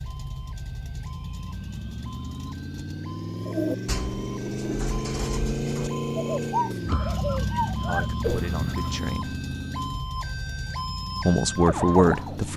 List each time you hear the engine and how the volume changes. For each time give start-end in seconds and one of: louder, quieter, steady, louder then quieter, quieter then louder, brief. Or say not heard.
0.0-12.5 louder then quieter.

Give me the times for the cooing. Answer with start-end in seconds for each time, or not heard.
3.4-9.2.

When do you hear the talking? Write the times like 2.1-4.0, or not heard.
7.8-9.3, 11.2-12.5.